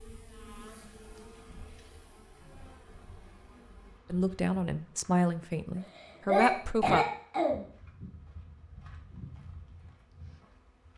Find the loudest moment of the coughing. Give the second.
6 s.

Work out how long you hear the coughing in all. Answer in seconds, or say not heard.
2 s.